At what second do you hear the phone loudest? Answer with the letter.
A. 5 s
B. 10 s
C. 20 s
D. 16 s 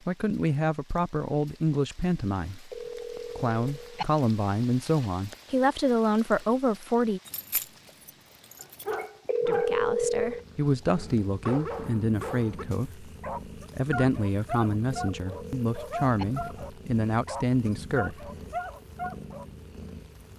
B.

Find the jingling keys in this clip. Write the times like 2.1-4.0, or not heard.
7.2-9.1.